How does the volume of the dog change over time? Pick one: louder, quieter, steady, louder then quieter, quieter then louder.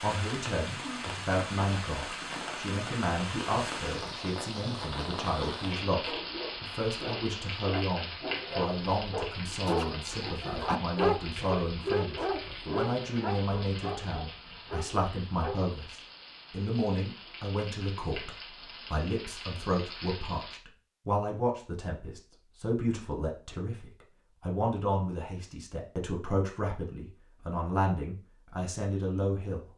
louder then quieter.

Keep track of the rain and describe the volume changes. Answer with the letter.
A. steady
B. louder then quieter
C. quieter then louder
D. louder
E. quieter
E.